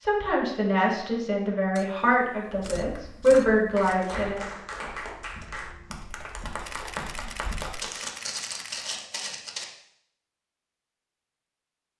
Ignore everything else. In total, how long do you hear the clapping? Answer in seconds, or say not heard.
5 s.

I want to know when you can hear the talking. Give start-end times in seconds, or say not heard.
0.0-4.5.